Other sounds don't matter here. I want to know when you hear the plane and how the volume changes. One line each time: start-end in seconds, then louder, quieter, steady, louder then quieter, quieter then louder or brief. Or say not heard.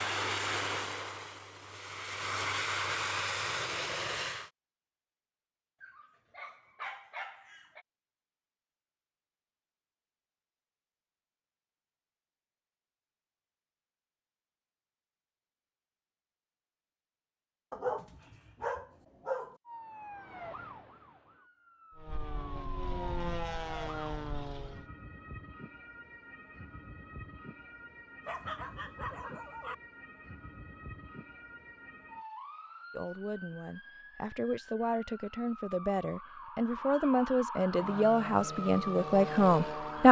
0.0-4.5 quieter then louder
21.9-24.9 brief
37.6-40.0 brief.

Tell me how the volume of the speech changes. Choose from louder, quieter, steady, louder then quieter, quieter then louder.
louder.